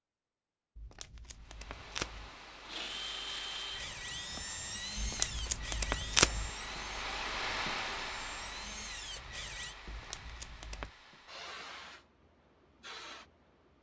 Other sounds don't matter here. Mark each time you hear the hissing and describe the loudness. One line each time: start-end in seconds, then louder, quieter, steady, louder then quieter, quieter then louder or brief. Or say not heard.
1.3-13.7 louder then quieter.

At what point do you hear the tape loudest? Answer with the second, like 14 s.
6 s.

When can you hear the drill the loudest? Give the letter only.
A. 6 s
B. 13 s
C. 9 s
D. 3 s
D.